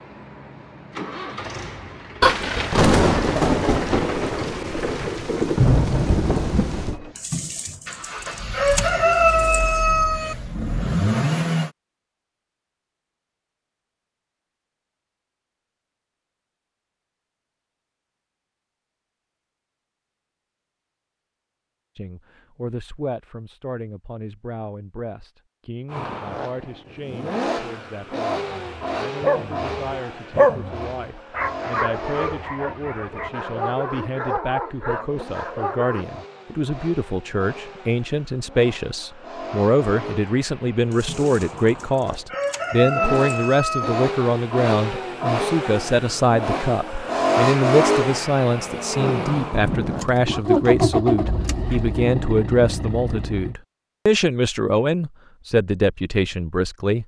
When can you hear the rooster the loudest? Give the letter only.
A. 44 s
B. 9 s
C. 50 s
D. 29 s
B.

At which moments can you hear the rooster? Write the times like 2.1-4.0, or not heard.
7.2-10.3, 40.9-44.1.